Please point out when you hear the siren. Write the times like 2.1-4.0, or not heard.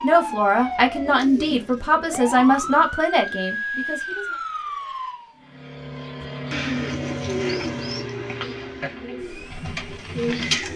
0.0-5.5.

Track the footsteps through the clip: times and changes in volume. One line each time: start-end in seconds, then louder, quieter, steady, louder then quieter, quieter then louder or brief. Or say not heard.
not heard.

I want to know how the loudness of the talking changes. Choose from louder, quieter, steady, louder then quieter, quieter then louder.
quieter.